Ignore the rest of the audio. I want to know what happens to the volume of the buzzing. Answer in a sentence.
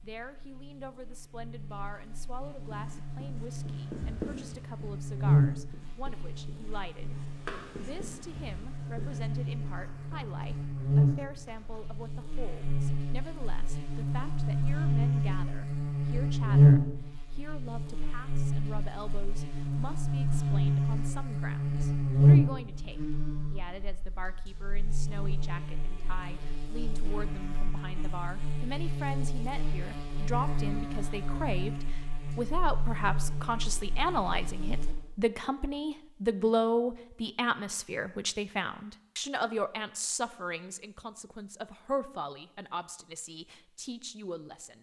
The loudness of the buzzing goes up, then down.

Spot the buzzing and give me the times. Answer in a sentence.
You can hear the buzzing from 0.0 to 35.0 s.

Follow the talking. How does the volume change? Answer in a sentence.
The volume of the talking goes up.